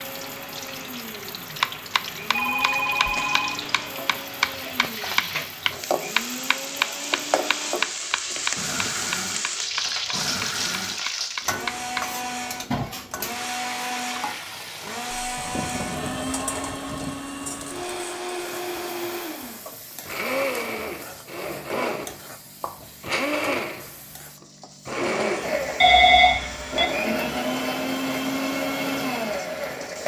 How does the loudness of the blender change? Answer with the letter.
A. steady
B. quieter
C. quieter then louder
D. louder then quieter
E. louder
E.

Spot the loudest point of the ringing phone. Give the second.
26 s.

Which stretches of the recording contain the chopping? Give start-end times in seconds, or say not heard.
1.6-12.1.